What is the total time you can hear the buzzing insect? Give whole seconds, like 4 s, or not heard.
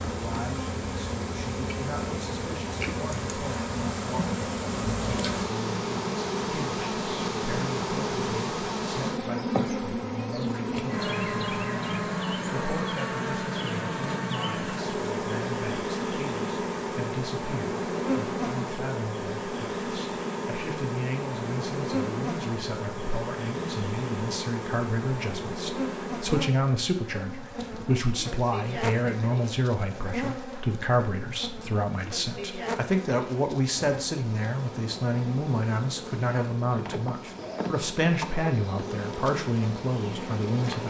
41 s.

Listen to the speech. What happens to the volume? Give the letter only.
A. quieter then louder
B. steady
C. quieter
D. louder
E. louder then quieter
D.